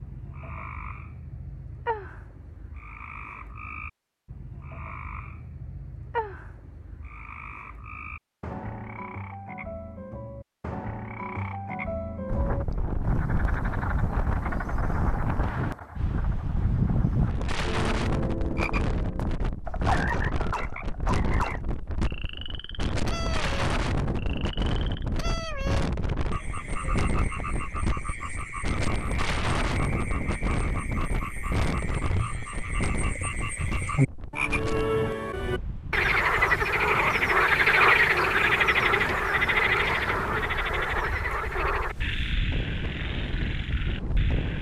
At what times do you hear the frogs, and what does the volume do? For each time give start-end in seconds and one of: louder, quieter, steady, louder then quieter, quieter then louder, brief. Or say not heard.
0.0-44.5 louder.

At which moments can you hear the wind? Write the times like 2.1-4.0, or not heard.
12.2-44.5.